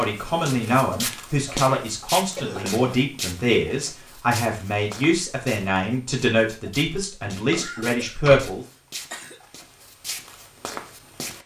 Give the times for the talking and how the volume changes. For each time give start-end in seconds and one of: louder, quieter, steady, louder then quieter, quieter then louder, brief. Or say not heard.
0.0-8.7 steady.